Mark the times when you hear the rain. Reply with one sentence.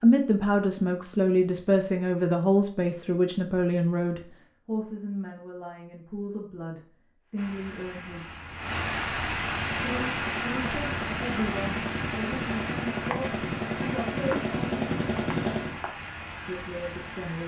The rain can be heard from 7.3 to 17.4 s.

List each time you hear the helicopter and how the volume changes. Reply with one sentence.
You can hear the helicopter from 9.5 to 15.8 s, getting louder.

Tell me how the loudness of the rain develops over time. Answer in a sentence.
The volume of the rain goes down.